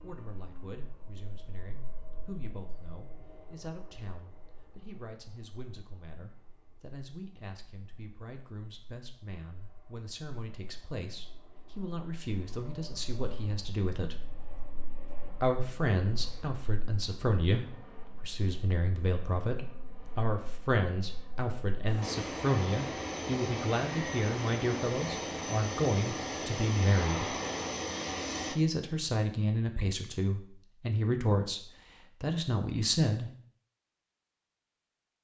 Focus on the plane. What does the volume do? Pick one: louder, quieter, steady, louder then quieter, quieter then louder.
quieter then louder.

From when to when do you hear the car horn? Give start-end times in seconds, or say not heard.
not heard.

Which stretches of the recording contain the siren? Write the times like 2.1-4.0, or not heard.
not heard.